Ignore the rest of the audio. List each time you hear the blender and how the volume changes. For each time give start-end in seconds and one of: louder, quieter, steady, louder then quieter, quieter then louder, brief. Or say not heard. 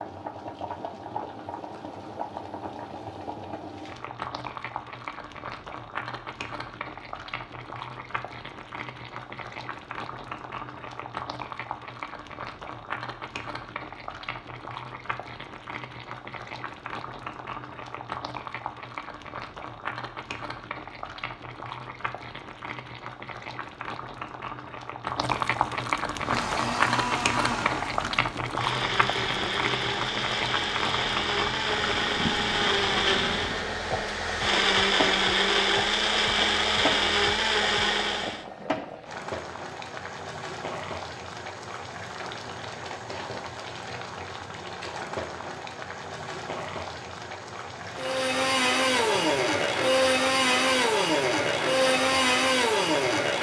26.1-38.5 louder
47.9-53.3 steady.